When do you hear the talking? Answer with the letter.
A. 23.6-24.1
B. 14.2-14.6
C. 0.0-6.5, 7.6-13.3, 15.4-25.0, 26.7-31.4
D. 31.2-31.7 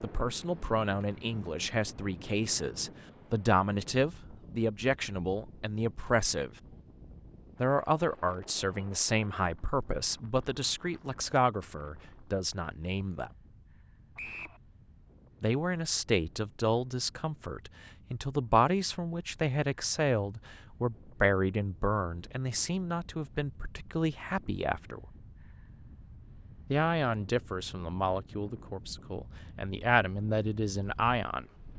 C.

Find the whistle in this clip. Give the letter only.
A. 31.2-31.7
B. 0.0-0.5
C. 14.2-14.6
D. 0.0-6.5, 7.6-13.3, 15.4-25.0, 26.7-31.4
C.